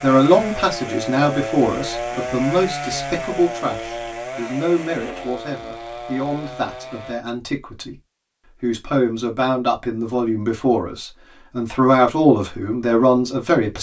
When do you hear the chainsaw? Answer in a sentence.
You can hear the chainsaw from 0.0 to 7.2 s.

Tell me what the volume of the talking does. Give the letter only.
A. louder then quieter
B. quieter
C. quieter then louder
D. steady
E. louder
C.